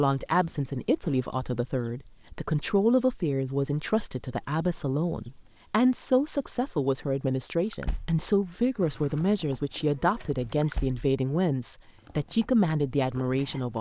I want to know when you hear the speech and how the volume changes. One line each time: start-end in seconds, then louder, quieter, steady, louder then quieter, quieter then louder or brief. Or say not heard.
0.0-13.7 steady.